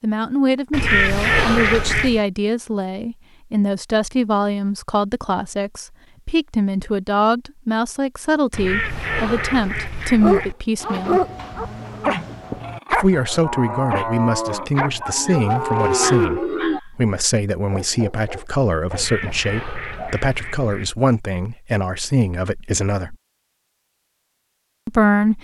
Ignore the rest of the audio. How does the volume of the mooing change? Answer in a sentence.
The loudness of the mooing goes up.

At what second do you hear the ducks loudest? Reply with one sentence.
The loudest moment of the ducks is at 1 second.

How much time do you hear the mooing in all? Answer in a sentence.
The mooing can be heard for 6 seconds in total.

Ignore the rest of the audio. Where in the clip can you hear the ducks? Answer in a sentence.
The ducks can be heard from 0.7 to 2.2 s, from 8.5 to 10.6 s and from 18.9 to 20.9 s.